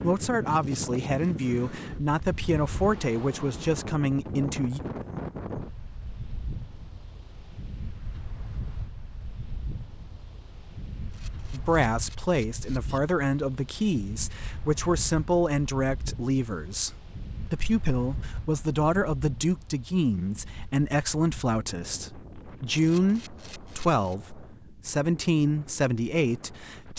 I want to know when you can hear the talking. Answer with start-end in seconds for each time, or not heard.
0.0-4.8, 11.5-26.9.